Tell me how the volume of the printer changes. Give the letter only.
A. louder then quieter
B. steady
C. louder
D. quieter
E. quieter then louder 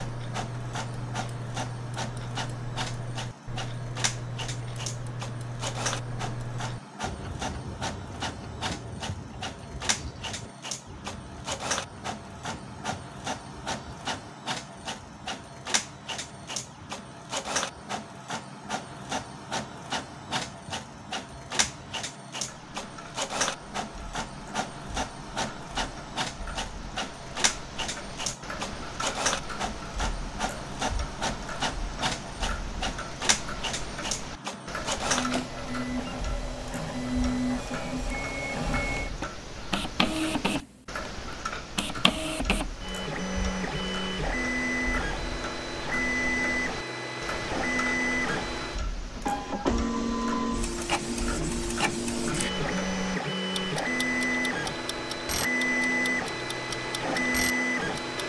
C.